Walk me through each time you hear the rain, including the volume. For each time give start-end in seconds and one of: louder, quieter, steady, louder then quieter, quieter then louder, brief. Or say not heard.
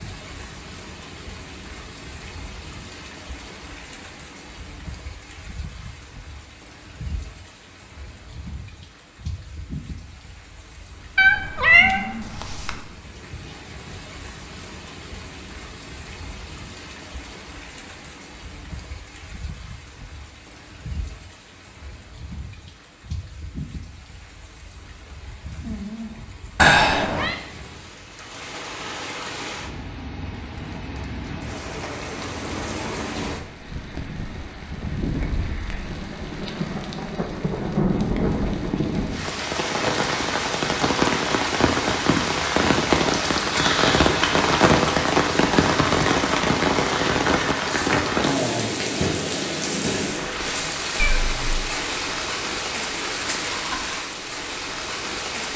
0.0-55.5 louder.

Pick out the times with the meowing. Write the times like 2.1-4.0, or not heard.
11.2-12.8, 26.6-27.4, 51.0-51.6.